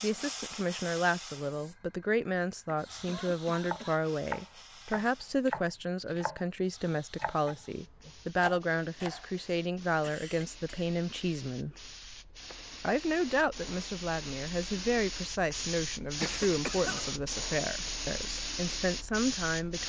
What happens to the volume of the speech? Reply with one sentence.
The volume of the speech stays about the same.